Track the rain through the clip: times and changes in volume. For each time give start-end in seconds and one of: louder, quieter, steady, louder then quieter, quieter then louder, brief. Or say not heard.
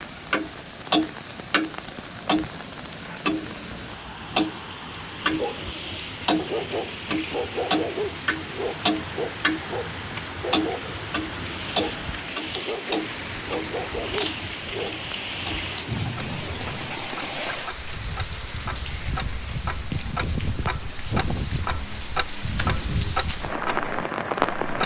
0.0-24.8 louder.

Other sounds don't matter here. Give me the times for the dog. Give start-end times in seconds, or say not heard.
5.3-15.0.